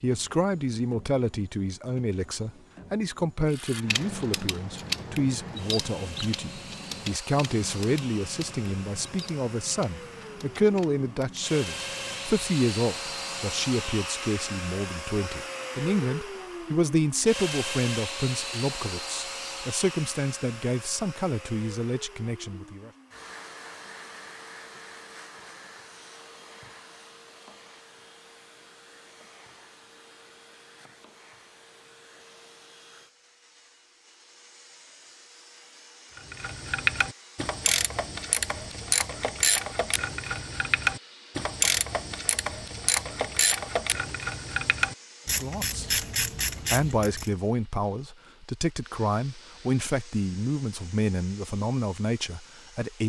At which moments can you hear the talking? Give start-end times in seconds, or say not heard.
0.0-22.9, 45.2-53.0.